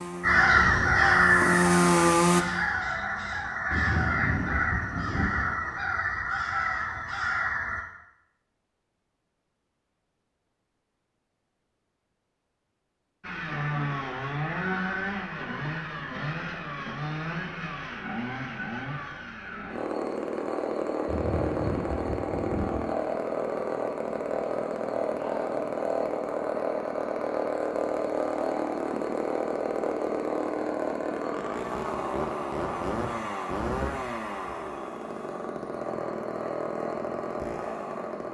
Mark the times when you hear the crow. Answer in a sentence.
The crow can be heard from 0.2 to 7.8 s.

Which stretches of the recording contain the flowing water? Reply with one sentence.
The flowing water can't be heard in this clip.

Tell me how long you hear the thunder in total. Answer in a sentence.
The thunder can be heard for 4 seconds in total.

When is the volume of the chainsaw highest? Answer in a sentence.
The loudest moment of the chainsaw is at 2 seconds.